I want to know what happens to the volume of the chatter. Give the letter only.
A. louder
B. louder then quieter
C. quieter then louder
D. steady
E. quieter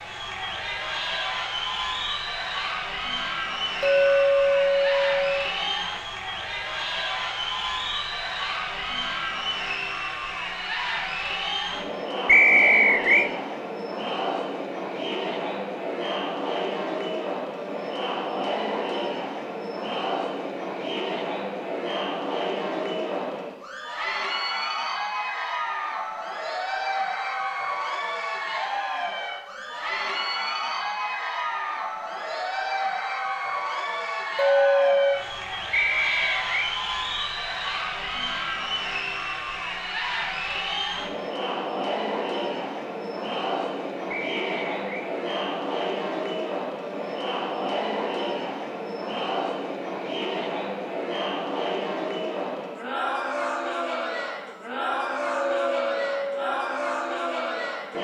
D.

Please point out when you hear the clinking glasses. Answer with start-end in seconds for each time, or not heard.
3.8-5.5, 34.4-35.2, 55.5-56.5.